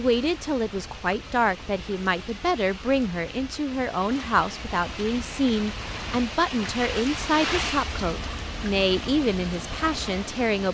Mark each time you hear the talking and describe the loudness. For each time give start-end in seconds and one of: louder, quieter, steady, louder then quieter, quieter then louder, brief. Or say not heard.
0.0-10.7 steady.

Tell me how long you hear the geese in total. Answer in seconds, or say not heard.
not heard.